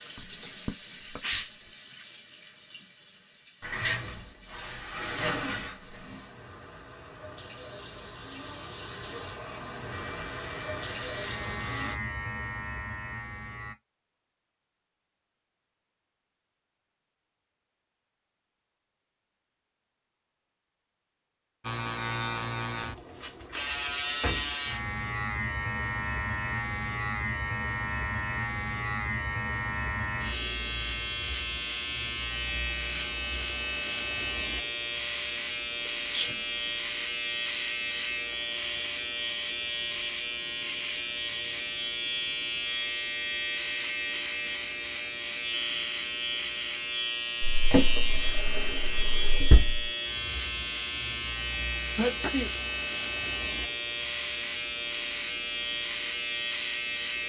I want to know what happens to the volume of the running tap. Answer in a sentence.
The volume of the running tap goes down, then up.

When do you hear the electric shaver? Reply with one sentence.
You can hear the electric shaver from 9.9 to 13.8 s and from 21.6 to 57.2 s.